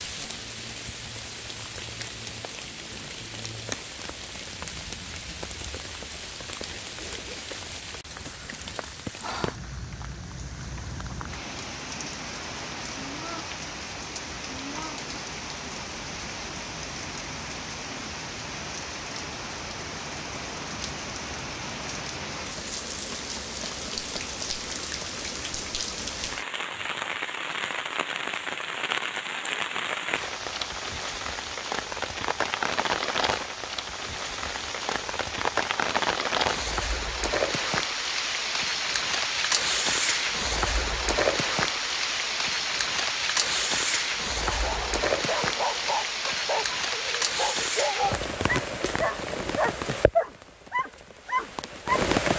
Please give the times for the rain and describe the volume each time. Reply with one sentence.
The rain can be heard from 0.0 to 52.3 s, getting louder.